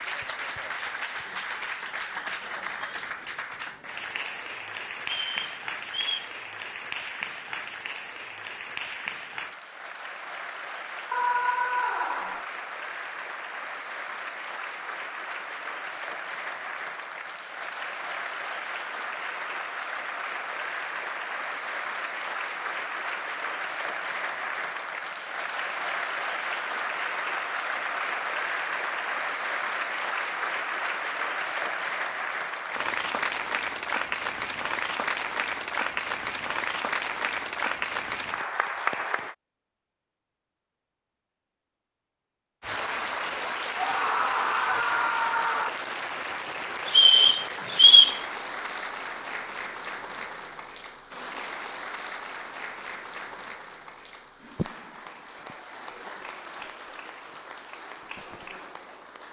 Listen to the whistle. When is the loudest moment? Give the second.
48 s.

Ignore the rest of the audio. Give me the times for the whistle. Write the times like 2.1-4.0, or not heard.
5.0-6.3, 46.9-48.2.